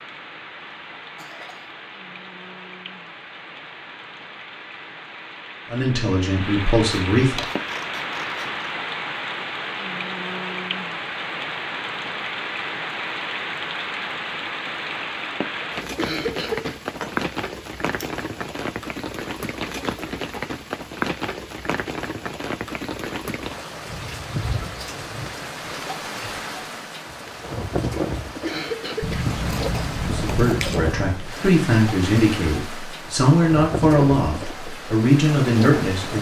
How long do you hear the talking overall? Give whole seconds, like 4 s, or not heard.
8 s.